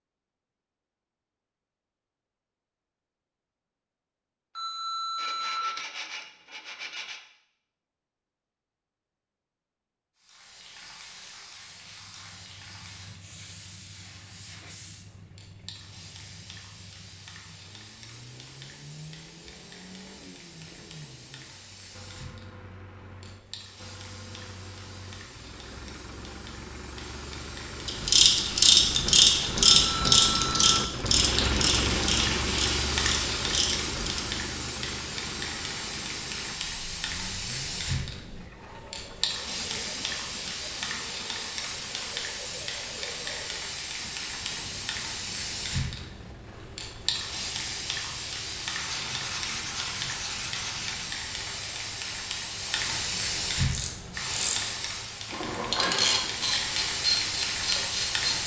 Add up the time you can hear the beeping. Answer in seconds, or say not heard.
2 s.